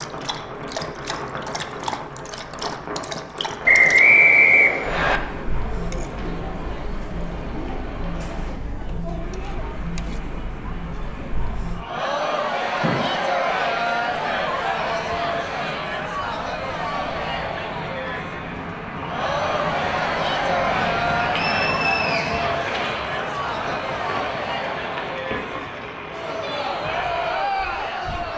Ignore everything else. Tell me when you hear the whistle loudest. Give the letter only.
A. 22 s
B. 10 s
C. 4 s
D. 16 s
C.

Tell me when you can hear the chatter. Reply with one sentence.
You can hear the chatter from 4.8 to 28.3 s.